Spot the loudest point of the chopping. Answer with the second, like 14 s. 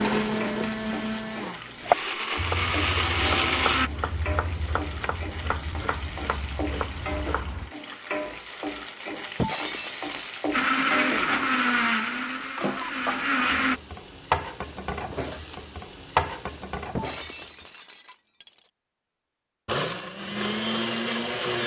2 s.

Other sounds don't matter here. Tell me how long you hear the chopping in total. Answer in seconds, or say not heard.
6 s.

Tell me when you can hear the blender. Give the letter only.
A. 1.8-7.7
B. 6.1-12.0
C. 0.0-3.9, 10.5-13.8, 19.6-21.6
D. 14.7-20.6
C.